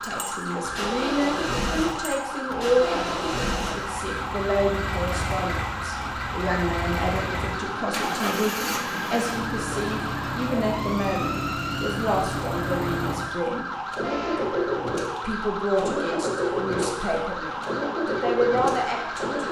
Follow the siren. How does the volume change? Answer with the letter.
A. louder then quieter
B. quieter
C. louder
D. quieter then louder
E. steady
E.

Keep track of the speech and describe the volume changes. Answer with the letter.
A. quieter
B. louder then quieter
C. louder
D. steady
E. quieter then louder
D.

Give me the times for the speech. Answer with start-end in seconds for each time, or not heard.
0.0-13.7, 15.2-19.4.